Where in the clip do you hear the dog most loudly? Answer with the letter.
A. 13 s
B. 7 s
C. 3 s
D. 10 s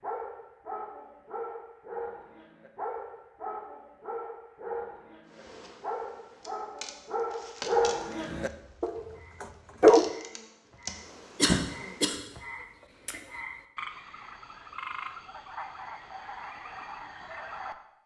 D.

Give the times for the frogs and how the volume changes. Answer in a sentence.
The frogs can be heard from 8.2 to 17.8 s, getting louder.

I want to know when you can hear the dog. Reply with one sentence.
The dog can be heard from 0.0 to 10.1 s.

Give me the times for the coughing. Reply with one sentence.
The coughing can be heard from 11.3 to 12.2 s.